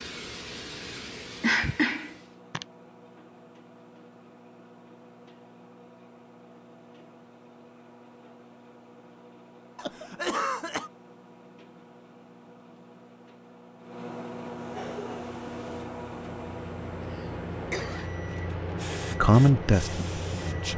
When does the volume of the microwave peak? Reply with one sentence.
The loudest moment of the microwave is at 15 seconds.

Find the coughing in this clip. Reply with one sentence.
The coughing can be heard from 1.4 to 2.6 s, from 9.8 to 10.9 s and from 17.1 to 18.1 s.